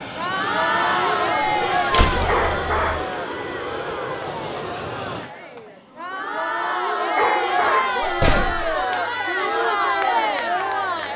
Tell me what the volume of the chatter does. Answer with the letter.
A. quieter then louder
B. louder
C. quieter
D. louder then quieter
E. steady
A.